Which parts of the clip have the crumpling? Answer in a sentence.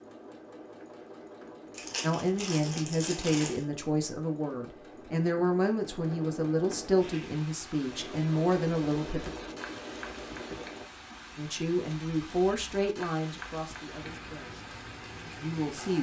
The crumpling can be heard from 1.7 to 3.6 s.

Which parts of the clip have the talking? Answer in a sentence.
The talking can be heard from 2.0 to 9.3 s, from 11.3 to 14.6 s and from 15.4 to 15.9 s.